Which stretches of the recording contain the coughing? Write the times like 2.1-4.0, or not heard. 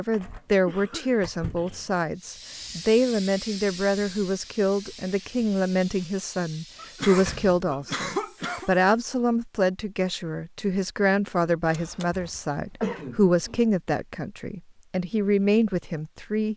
0.7-2.0, 6.8-8.7, 11.7-13.6.